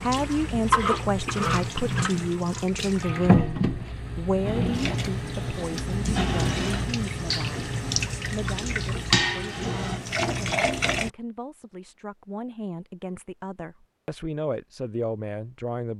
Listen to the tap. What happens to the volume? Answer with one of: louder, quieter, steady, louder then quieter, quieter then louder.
steady.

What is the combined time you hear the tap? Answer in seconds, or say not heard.
11 s.